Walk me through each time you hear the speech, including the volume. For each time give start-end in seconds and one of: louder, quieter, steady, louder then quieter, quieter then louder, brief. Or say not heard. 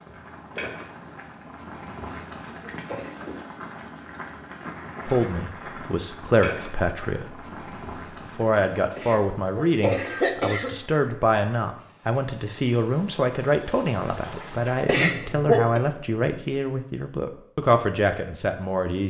5.0-7.5 brief
8.2-19.0 steady.